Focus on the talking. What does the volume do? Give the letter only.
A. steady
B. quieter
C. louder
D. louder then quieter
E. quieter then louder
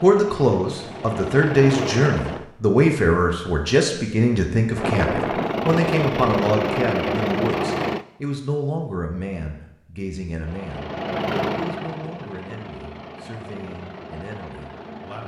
B.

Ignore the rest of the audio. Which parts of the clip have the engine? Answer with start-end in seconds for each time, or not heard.
0.0-2.5, 4.8-8.1, 10.4-15.2.